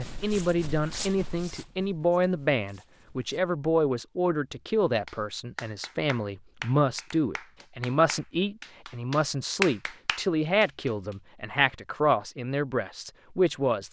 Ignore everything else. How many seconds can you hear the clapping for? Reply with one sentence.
You can hear the clapping for 6 seconds altogether.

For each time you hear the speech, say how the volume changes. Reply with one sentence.
You can hear the speech from 0.0 to 13.8 s, at a steady volume.